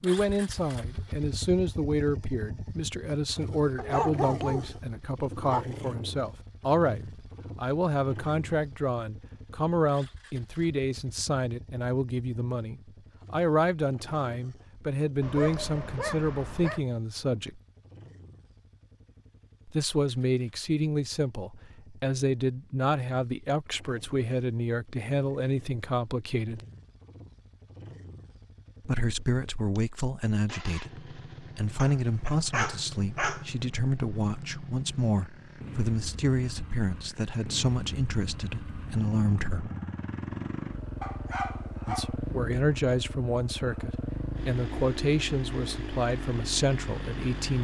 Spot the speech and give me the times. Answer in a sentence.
You can hear the speech from 0.0 to 17.6 s, from 19.6 to 26.6 s, from 28.9 to 39.7 s and from 41.9 to 47.6 s.